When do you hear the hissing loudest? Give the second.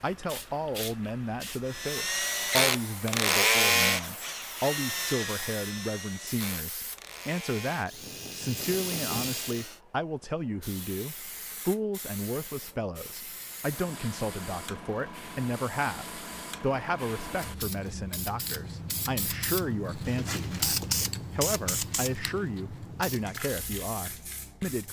21 s.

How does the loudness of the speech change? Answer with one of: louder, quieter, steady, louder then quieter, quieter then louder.
steady.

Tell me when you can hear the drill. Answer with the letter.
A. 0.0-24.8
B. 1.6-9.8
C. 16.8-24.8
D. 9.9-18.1
B.